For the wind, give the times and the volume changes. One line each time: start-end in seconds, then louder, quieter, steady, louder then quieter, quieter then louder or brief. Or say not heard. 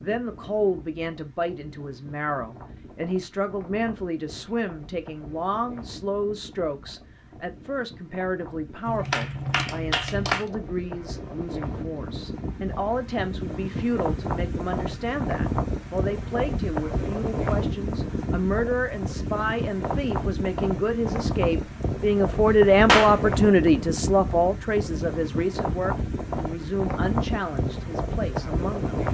0.0-29.0 louder.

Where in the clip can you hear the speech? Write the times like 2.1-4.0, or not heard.
0.0-28.9.